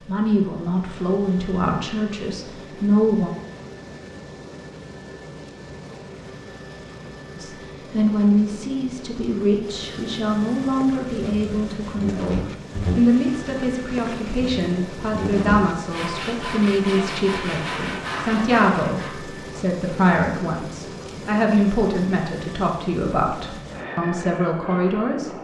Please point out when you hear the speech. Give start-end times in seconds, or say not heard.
0.1-3.3, 7.3-12.3, 12.9-25.3.